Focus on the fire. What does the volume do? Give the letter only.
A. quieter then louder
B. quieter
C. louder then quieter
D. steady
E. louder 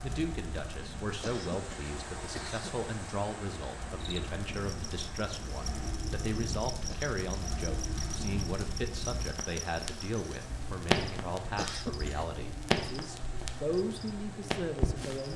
E.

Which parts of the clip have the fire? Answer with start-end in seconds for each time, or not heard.
0.0-15.3.